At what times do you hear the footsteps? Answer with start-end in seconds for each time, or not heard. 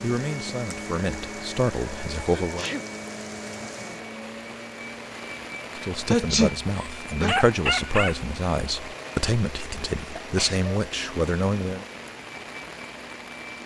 not heard.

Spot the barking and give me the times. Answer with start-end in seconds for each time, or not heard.
6.7-8.2.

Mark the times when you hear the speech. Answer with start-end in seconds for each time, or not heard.
0.0-2.6, 5.8-11.8.